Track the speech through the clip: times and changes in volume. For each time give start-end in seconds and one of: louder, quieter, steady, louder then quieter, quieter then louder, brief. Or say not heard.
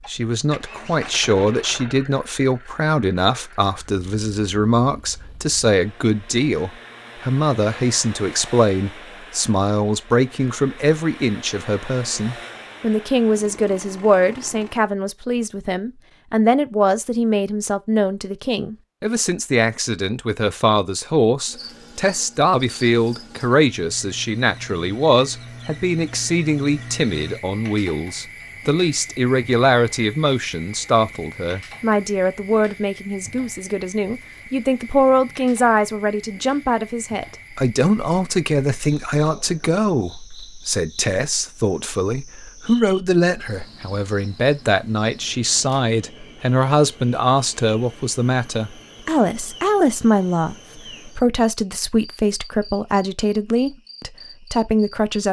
0.1-55.2 steady.